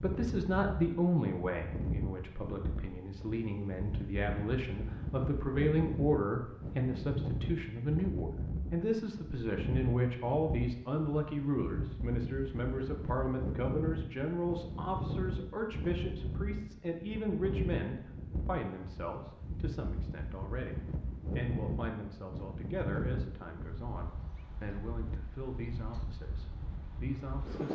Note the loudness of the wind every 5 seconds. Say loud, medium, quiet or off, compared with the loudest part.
loud, loud, loud, loud, loud, medium.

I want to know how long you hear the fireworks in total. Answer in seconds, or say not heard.
not heard.